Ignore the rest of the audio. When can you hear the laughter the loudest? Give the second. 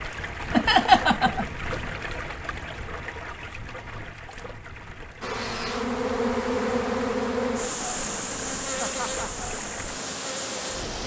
1 s.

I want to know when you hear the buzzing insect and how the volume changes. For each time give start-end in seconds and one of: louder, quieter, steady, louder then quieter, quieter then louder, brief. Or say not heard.
5.2-11.0 quieter.